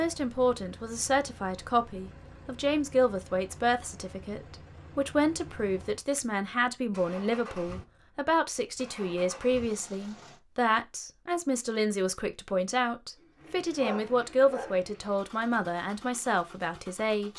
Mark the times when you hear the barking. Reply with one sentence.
The barking can be heard from 13.2 to 14.8 s.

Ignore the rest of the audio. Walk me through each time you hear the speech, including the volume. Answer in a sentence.
The speech can be heard from 0.0 to 17.3 s, at a steady volume.